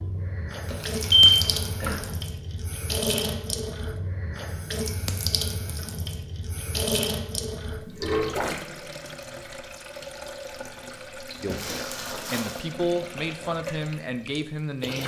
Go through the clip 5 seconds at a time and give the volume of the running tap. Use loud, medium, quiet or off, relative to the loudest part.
loud, loud, medium.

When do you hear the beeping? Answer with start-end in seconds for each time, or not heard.
0.7-1.9.